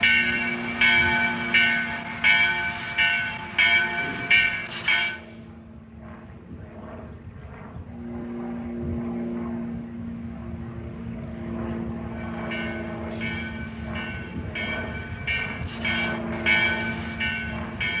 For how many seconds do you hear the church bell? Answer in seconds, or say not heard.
11 s.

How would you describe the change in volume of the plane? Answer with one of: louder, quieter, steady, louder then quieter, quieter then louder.
quieter then louder.